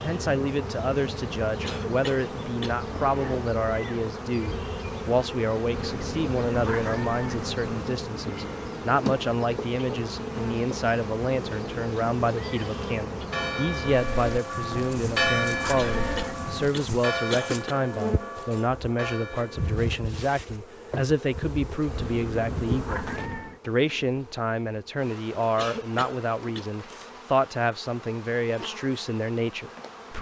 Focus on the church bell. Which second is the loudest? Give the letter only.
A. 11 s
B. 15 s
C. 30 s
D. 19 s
B.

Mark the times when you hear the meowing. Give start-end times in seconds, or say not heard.
5.7-7.7, 14.7-16.7, 21.9-23.6.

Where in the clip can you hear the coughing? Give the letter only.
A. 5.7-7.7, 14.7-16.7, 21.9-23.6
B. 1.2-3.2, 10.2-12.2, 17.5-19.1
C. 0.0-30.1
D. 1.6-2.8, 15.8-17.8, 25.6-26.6
D.